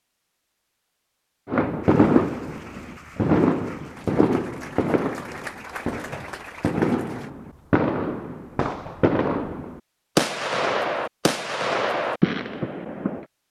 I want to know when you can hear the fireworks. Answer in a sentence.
The fireworks can be heard from 1.4 to 13.2 s.